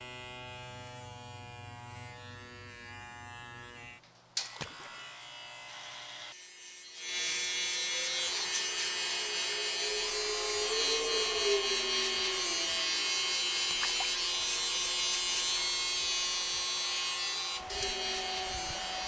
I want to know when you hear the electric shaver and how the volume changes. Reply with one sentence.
The electric shaver can be heard from 0.0 to 19.0 s, getting louder.